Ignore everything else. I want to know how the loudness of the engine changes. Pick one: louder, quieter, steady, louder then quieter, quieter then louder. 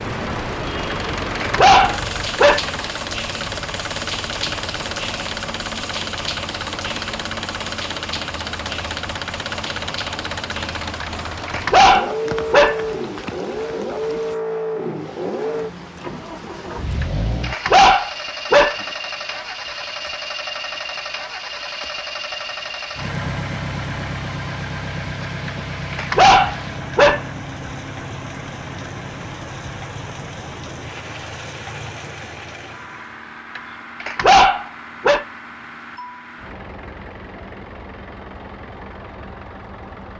quieter.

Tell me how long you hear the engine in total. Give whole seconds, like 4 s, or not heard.
40 s.